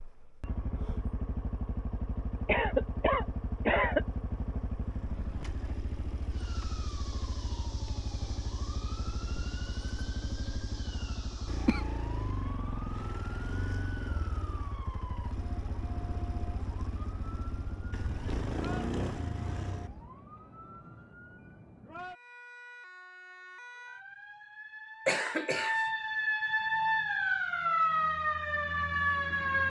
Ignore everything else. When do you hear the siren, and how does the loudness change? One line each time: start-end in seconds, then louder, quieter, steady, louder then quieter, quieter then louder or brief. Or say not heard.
6.3-29.6 louder.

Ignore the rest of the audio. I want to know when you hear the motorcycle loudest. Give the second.
19 s.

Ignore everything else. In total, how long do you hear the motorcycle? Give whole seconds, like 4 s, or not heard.
20 s.